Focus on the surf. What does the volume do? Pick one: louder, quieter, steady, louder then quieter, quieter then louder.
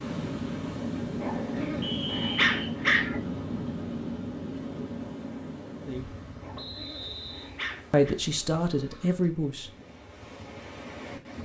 quieter.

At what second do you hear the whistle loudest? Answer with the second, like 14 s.
2 s.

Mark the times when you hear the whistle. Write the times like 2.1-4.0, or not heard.
1.8-2.8, 6.5-7.5.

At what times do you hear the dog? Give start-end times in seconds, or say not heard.
1.2-3.2, 6.4-8.2.